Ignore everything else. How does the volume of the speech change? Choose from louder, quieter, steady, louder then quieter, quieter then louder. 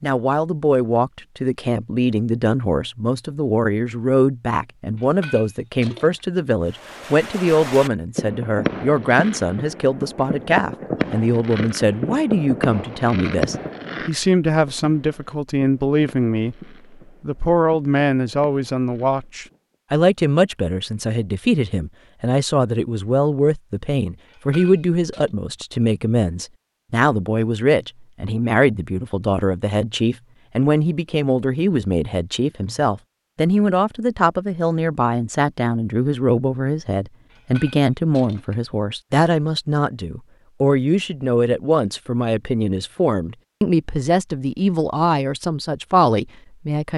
steady.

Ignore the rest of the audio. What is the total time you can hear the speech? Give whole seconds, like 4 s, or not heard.
46 s.